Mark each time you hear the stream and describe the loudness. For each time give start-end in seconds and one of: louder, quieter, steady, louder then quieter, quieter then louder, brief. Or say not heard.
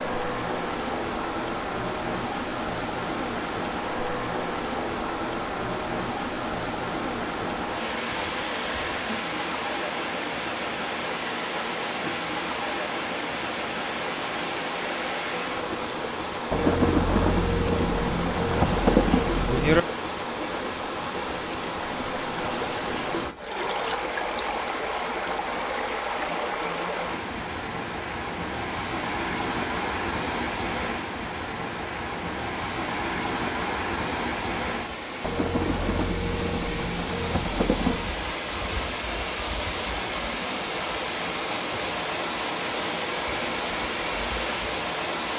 0.0-45.3 steady.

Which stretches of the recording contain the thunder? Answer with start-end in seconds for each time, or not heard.
16.5-19.8, 35.2-38.1.